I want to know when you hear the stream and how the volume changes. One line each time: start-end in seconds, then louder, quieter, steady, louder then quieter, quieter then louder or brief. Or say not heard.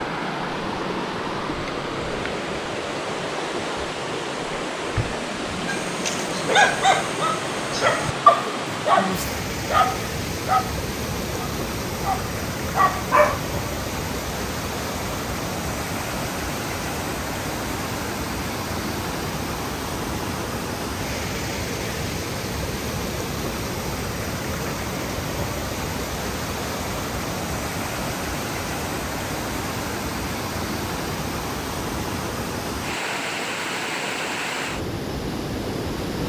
0.0-36.2 steady.